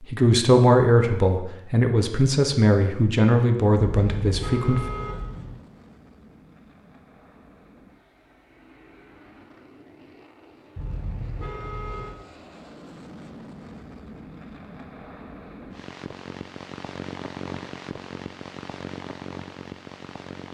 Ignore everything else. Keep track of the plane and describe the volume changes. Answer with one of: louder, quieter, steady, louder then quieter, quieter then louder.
louder.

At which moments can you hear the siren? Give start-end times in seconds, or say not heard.
not heard.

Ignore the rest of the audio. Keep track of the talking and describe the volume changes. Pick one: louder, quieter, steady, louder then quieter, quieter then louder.
quieter.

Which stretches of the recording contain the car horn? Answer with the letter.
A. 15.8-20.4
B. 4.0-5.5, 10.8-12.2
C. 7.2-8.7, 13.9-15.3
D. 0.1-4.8
B.